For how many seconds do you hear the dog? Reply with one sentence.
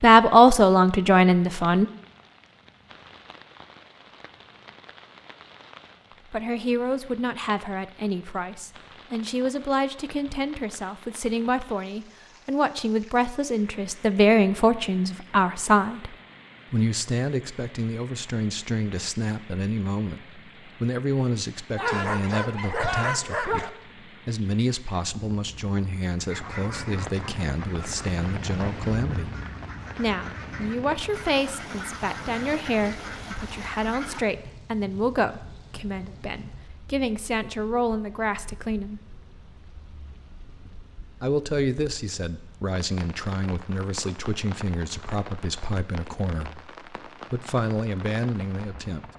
The dog can be heard for 2 seconds in total.